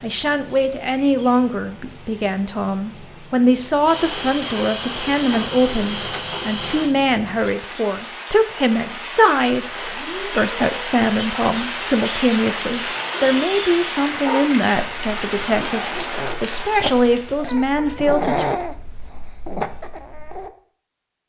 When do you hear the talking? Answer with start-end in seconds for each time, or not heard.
0.0-18.4.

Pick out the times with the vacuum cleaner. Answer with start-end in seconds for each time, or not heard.
3.8-7.0, 9.7-13.5.